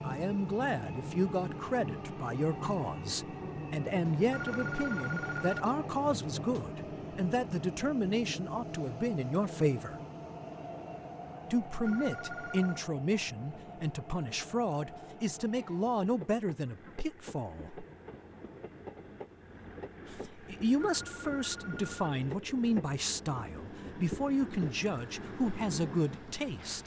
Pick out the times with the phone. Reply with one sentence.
You can hear the phone from 4.3 to 5.7 s, from 11.8 to 12.8 s and from 20.9 to 22.1 s.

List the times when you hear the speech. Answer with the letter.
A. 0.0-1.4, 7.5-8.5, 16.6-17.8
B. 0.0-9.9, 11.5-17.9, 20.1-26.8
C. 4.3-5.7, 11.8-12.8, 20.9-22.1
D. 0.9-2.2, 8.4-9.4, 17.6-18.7
B.